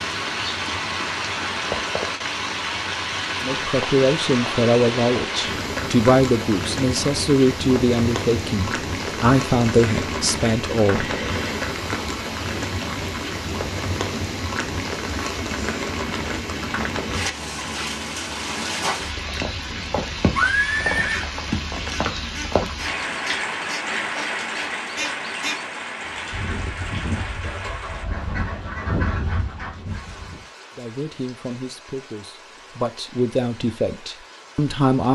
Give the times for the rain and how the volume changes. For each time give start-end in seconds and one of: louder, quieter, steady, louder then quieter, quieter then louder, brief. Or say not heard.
0.0-35.1 quieter.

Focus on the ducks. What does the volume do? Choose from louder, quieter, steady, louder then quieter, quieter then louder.
louder.